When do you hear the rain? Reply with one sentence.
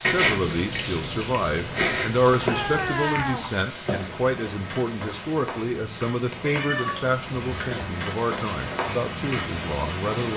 The rain can be heard from 0.0 to 10.3 s.